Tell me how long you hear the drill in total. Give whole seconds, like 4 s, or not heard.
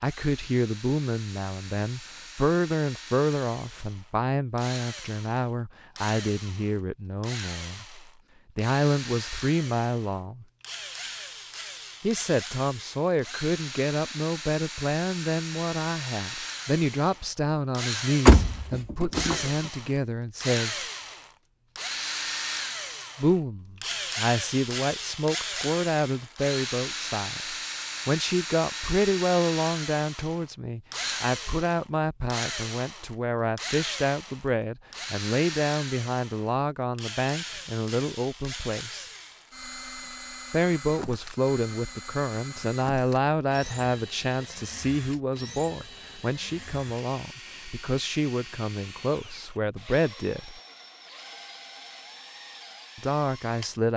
54 s.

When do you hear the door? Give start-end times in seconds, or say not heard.
18.2-19.4.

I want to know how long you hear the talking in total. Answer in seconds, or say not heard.
46 s.